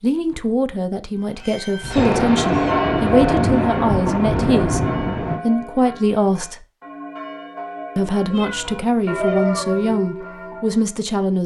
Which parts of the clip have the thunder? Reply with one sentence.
You can hear the thunder from 1.9 to 5.4 s.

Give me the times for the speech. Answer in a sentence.
The speech can be heard from 0.0 to 6.7 s and from 8.0 to 11.4 s.